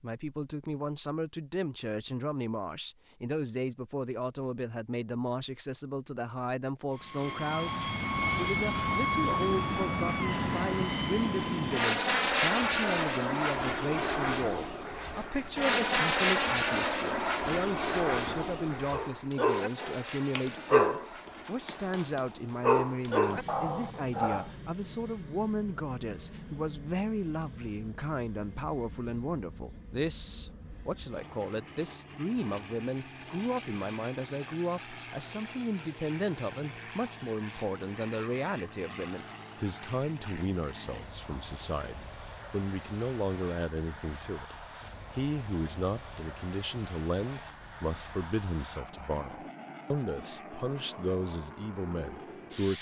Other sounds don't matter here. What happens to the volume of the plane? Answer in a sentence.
The loudness of the plane goes down.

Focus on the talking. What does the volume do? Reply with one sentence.
The volume of the talking stays about the same.